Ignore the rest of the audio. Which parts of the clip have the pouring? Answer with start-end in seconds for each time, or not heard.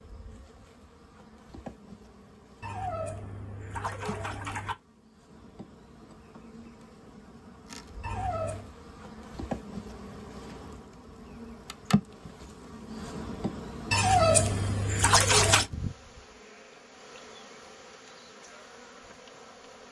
2.6-4.8, 8.0-8.7, 13.9-15.7.